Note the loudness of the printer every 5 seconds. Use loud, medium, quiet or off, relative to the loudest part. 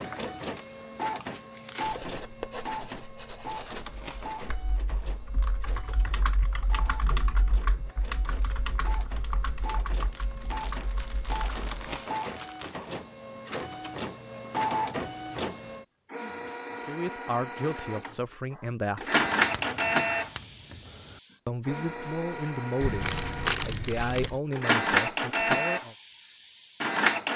medium, quiet, medium, loud, loud, loud.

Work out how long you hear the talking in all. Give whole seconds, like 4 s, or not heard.
7 s.